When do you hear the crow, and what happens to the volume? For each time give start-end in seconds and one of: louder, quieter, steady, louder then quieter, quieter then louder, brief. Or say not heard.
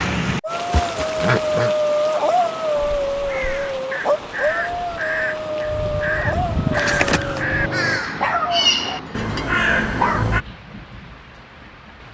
2.9-10.4 louder.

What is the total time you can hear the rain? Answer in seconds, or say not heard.
12 s.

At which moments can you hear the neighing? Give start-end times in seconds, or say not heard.
0.7-1.8, 6.7-7.4.